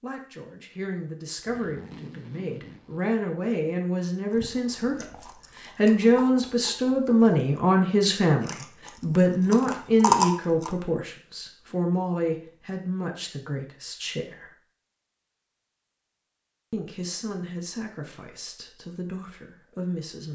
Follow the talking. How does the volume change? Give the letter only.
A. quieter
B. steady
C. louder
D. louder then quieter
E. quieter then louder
D.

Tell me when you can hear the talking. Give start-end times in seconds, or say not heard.
0.0-14.6, 16.7-20.2.